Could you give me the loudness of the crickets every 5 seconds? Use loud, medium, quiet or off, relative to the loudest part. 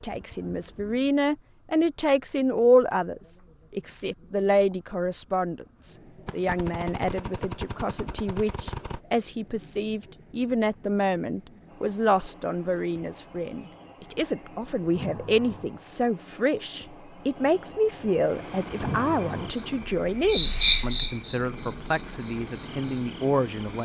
quiet, quiet, quiet, quiet, loud.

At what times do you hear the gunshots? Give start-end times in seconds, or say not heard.
6.2-9.0.